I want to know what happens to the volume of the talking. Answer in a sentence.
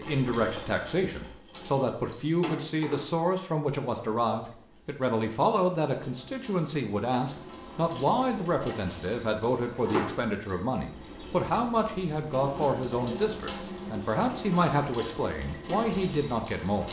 The volume of the talking stays about the same.